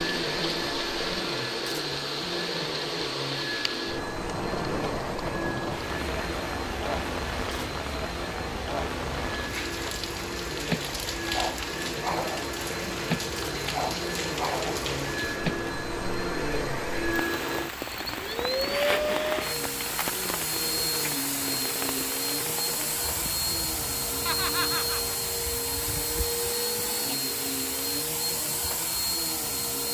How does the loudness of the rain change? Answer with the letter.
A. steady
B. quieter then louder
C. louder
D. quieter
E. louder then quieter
D.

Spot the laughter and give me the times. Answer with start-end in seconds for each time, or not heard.
24.2-25.1.